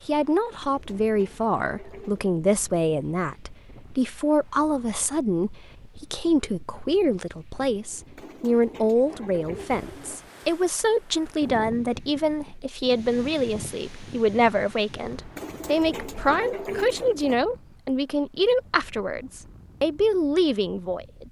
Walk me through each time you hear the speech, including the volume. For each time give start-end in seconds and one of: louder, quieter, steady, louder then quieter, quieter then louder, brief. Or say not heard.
0.1-21.2 steady.